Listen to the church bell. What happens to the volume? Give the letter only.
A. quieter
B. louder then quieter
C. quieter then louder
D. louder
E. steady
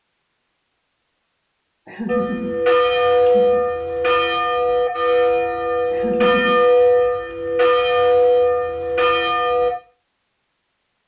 E.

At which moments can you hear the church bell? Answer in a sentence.
You can hear the church bell from 2.0 to 9.8 s.